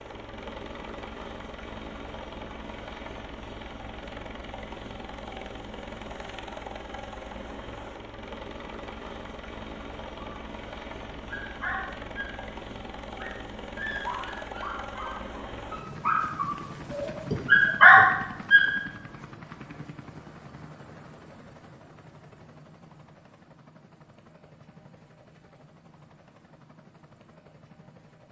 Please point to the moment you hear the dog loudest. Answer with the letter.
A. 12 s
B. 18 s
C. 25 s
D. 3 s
B.